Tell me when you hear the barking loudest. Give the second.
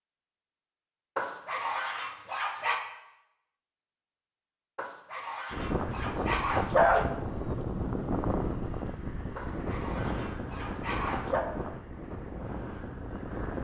7 s.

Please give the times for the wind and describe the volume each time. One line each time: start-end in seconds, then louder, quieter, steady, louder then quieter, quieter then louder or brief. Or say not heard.
5.5-13.5 quieter.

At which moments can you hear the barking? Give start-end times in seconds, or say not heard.
1.1-2.9, 4.8-7.1, 9.3-11.4.